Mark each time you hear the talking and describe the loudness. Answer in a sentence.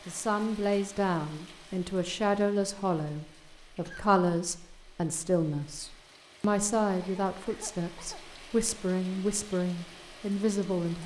You can hear the talking from 0.1 to 11.0 s, at a steady volume.